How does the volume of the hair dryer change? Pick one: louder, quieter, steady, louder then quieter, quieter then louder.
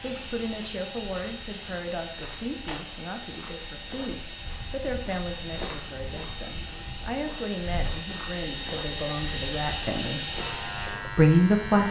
louder.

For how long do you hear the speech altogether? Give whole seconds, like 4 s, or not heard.
12 s.